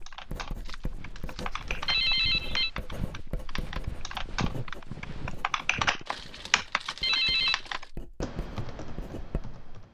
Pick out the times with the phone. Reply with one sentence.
The phone can be heard from 1.9 to 2.7 s and from 7.0 to 7.6 s.